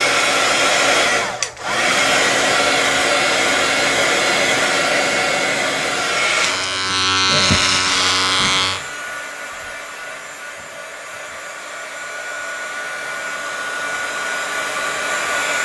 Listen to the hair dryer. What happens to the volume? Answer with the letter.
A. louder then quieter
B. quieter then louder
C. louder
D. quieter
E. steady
B.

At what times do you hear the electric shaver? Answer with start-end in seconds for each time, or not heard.
6.2-8.8.